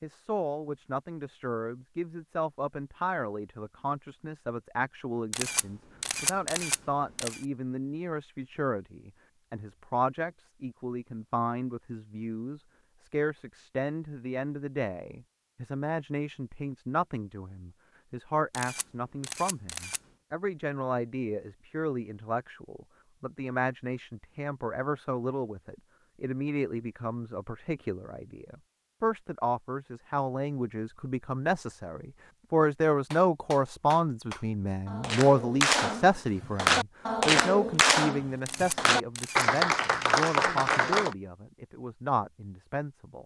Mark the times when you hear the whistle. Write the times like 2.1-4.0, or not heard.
not heard.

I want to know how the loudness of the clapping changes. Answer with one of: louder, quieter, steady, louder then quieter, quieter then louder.
louder.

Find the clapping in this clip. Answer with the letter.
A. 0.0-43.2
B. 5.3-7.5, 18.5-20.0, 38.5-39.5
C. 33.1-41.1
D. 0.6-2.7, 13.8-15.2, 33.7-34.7
C.